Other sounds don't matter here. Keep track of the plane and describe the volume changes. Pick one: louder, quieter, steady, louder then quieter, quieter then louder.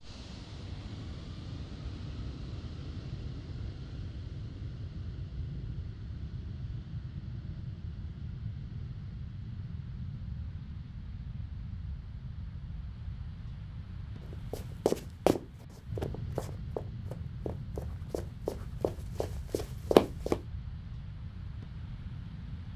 steady.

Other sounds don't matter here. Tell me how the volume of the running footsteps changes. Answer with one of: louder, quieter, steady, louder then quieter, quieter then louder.
quieter then louder.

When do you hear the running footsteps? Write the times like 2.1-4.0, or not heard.
14.3-20.4.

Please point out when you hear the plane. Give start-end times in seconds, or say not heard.
0.0-22.7.